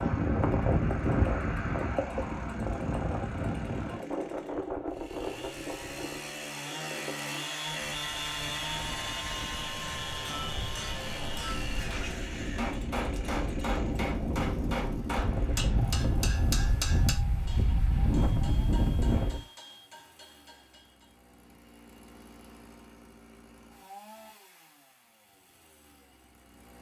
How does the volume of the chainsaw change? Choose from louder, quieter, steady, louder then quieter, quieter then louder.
louder then quieter.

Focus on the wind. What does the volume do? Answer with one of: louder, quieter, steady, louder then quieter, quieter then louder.
quieter then louder.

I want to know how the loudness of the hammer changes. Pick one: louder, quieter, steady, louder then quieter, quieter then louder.
louder then quieter.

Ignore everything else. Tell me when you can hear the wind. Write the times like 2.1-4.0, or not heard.
0.0-19.4.